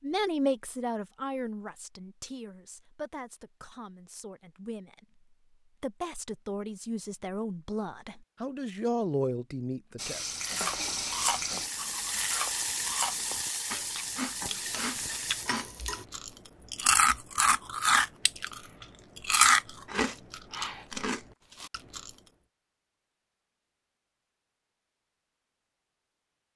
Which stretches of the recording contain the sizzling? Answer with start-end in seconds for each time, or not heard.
9.9-16.1.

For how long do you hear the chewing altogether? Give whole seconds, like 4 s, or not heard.
12 s.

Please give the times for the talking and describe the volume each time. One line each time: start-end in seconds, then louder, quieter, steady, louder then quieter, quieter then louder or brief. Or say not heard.
0.0-10.2 quieter then louder.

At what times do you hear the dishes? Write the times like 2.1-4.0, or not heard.
not heard.